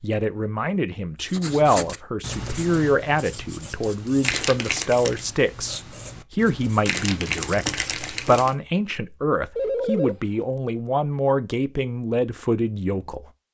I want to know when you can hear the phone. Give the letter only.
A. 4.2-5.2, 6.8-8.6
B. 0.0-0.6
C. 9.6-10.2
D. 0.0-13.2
C.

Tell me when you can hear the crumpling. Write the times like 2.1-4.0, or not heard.
4.2-5.2, 6.8-8.6.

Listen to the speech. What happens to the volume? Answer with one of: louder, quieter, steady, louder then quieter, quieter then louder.
steady.